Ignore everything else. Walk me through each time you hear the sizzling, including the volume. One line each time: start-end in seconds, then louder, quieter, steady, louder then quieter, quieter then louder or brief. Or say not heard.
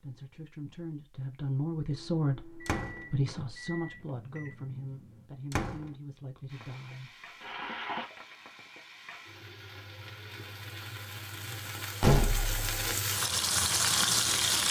6.5-14.6 quieter then louder.